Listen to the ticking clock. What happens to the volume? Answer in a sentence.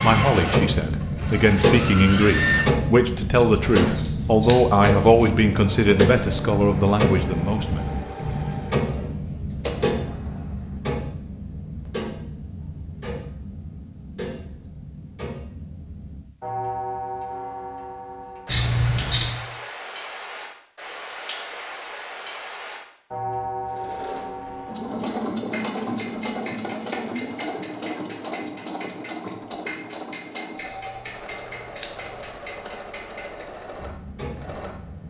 The loudness of the ticking clock goes down.